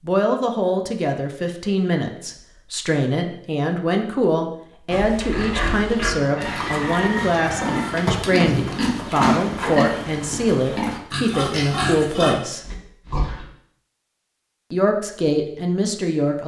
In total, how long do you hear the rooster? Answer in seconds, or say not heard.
2 s.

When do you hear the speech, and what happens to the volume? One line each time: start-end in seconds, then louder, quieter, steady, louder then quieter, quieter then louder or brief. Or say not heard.
0.1-12.6 steady
14.7-16.4 brief.